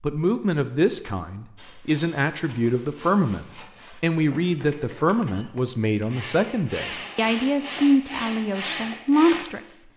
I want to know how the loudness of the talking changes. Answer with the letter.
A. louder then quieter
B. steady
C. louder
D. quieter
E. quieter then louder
B.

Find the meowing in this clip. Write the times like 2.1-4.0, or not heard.
not heard.